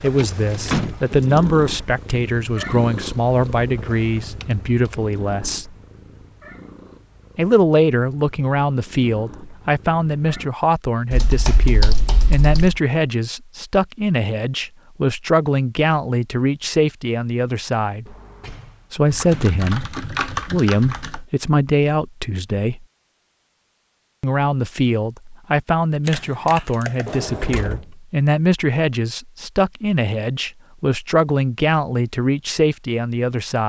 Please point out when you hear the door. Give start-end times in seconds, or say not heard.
0.1-1.4, 18.1-19.5, 27.1-27.9.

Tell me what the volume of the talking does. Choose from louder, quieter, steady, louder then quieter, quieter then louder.
steady.